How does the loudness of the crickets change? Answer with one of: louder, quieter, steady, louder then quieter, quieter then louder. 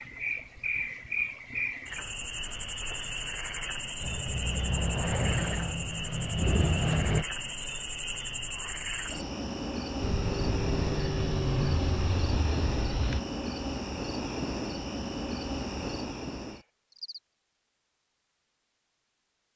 steady.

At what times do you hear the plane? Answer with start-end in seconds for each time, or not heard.
4.0-7.2, 10.0-13.2.